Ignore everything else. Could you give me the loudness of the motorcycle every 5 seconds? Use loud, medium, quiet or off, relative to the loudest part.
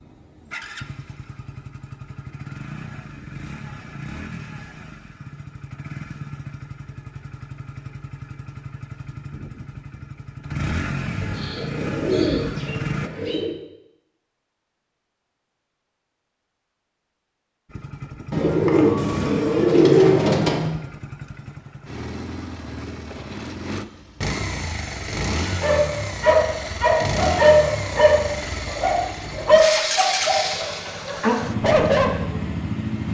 medium, medium, loud, medium, medium, loud, loud.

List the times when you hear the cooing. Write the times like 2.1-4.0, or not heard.
11.0-13.6, 18.3-20.7.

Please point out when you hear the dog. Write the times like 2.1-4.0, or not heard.
25.6-32.1.